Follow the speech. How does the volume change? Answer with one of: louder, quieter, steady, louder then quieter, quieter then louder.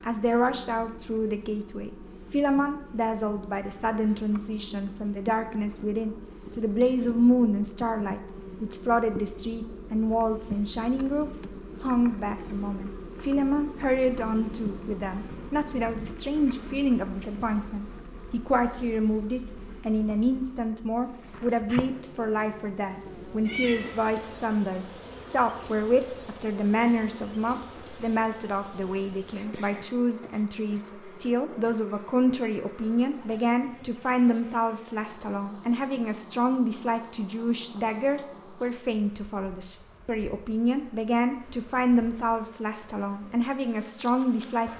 steady.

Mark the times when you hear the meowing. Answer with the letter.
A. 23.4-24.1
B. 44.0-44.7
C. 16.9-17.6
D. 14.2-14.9
A.